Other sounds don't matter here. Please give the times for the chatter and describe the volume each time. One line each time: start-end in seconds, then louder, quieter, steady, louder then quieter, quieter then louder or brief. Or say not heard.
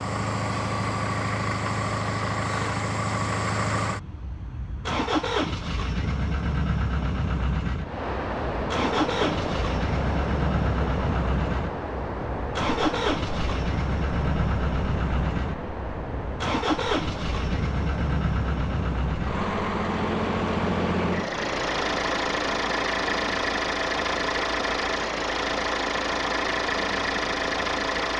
not heard.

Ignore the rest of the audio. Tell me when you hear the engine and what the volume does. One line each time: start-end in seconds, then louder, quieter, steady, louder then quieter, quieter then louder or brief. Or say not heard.
0.0-28.1 steady.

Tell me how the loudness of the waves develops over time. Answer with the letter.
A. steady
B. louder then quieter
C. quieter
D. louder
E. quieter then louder
C.